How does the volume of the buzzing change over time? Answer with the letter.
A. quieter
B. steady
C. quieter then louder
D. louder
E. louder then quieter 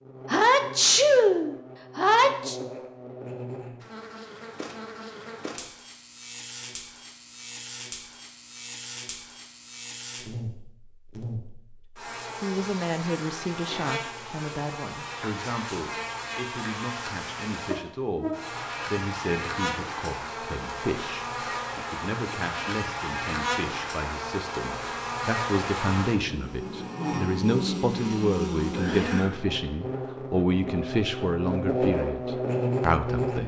D.